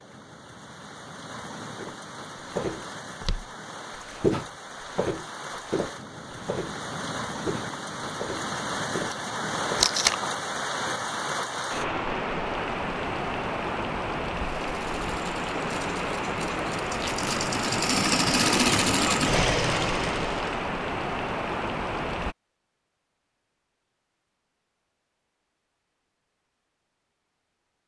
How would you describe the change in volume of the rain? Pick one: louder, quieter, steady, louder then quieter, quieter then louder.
louder.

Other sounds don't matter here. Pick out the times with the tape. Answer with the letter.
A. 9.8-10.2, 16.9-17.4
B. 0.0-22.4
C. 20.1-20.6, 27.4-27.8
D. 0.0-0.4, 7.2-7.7
A.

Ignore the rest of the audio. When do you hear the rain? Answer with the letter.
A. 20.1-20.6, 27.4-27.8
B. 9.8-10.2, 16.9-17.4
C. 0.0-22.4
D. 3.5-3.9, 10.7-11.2
C.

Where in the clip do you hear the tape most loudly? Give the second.
10 s.